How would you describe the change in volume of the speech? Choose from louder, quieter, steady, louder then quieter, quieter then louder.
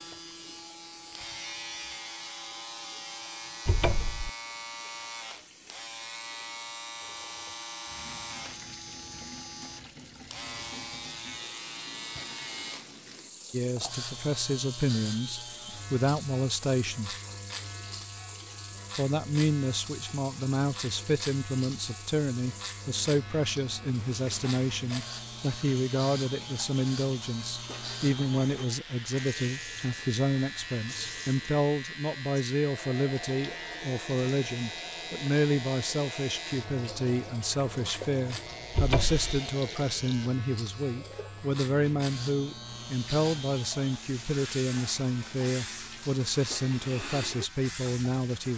steady.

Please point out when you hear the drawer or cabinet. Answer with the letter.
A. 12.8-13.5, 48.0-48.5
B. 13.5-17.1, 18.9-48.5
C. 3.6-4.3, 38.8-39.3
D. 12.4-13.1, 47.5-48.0
C.